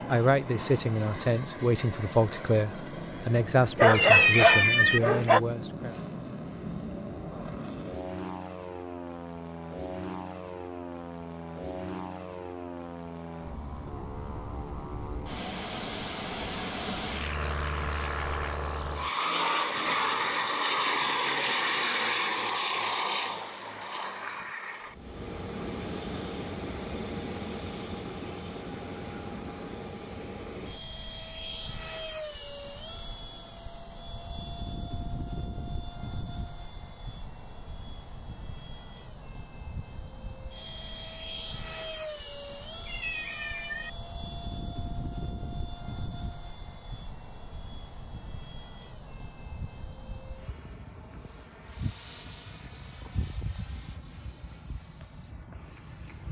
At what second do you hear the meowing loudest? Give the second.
4 s.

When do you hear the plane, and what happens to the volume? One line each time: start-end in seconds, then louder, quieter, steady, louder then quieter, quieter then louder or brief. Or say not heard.
0.0-56.2 louder then quieter.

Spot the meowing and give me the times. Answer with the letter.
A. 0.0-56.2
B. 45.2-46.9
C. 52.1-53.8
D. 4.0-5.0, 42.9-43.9
D.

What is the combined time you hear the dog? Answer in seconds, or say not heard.
2 s.